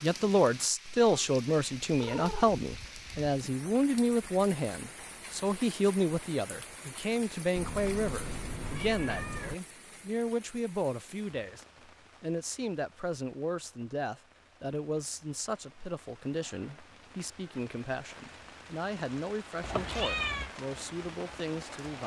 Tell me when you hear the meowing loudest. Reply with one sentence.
The volume of the meowing peaks at 20 seconds.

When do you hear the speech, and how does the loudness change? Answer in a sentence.
You can hear the speech from 0.0 to 22.0 s, getting quieter.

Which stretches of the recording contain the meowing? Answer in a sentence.
You can hear the meowing from 1.1 to 2.6 s, from 7.5 to 9.6 s and from 19.6 to 20.5 s.